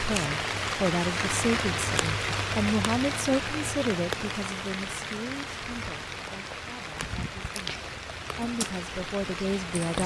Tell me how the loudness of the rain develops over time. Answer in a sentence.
The loudness of the rain goes down.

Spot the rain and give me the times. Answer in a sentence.
You can hear the rain from 0.0 to 10.0 s.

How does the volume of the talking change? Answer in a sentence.
The loudness of the talking goes down, then up.